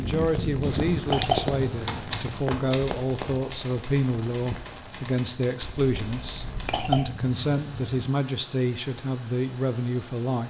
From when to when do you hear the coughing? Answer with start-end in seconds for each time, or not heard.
0.9-2.5, 6.4-8.0.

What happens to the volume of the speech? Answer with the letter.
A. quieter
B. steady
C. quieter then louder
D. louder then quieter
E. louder
B.